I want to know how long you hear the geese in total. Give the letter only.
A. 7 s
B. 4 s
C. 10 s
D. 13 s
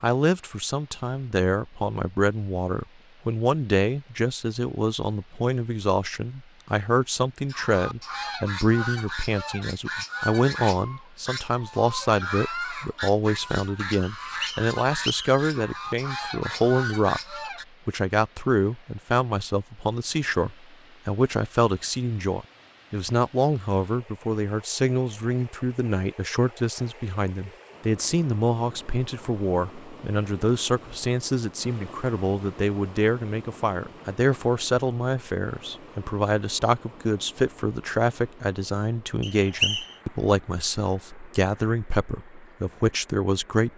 C.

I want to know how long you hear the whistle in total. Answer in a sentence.
You can hear the whistle for 2 seconds altogether.